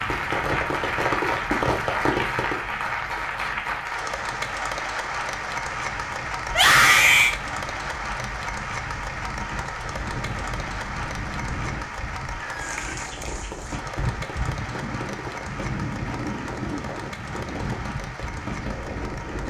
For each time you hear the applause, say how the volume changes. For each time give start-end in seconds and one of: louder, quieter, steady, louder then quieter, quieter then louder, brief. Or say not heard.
0.0-19.4 quieter.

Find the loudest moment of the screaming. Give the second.
7 s.